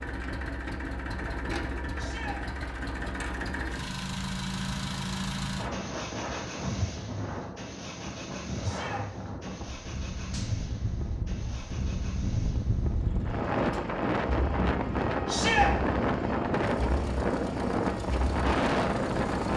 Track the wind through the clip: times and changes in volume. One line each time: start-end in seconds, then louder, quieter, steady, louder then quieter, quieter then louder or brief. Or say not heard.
5.5-19.5 louder.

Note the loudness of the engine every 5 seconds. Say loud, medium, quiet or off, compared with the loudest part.
loud, loud, medium, medium.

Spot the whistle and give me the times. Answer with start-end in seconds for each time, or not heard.
not heard.